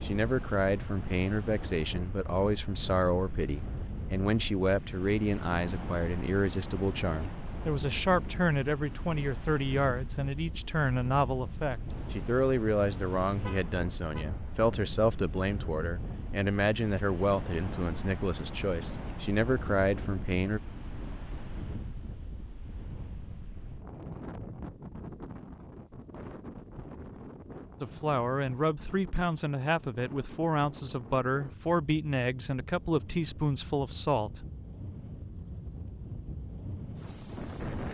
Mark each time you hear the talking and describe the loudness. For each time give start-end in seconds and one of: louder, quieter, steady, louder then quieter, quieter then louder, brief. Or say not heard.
0.0-20.6 steady
27.8-34.5 steady.